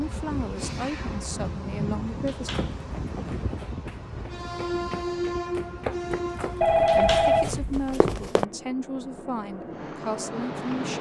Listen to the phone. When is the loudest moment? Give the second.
7 s.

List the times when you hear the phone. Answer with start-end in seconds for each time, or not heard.
6.6-8.3.